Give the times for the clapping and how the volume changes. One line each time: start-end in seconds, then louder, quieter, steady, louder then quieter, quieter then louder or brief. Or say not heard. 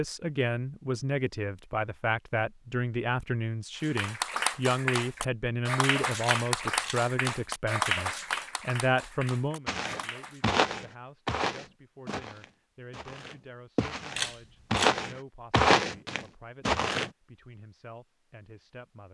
3.8-10.6 quieter.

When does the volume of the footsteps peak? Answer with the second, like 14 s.
16 s.